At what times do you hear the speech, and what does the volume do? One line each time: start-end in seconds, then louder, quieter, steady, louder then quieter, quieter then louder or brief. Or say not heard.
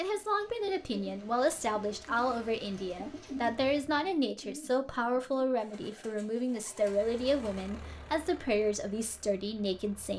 0.0-10.1 steady.